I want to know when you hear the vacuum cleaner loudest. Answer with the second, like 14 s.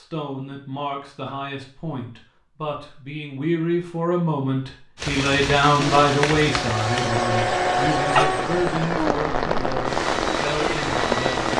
8 s.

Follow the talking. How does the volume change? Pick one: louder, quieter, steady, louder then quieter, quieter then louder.
louder then quieter.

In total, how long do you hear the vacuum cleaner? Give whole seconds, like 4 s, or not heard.
6 s.